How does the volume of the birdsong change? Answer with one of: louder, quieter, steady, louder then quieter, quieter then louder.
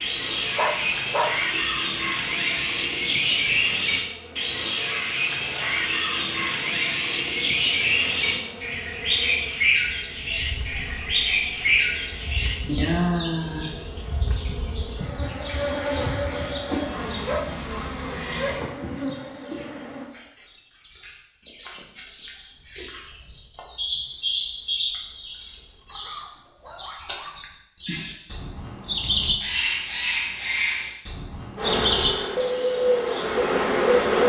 quieter then louder.